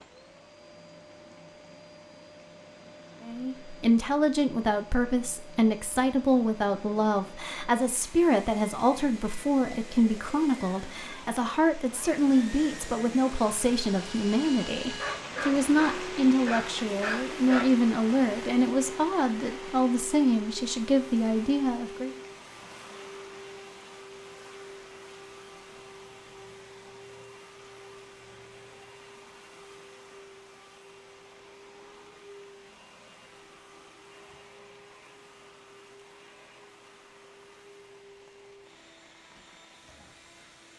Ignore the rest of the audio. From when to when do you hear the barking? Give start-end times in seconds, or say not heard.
14.8-17.8.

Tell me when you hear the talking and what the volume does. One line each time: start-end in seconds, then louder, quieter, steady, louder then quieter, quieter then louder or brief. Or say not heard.
3.2-22.1 steady.